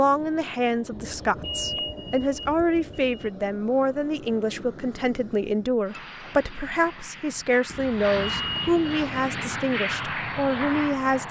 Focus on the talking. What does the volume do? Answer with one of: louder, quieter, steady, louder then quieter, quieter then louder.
steady.